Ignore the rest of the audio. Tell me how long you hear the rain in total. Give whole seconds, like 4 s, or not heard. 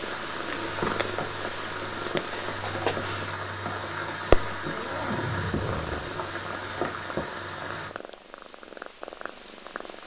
8 s.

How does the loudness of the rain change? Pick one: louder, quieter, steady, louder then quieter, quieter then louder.
steady.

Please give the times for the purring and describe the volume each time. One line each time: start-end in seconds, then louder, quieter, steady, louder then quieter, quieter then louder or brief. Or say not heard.
0.0-10.0 louder then quieter.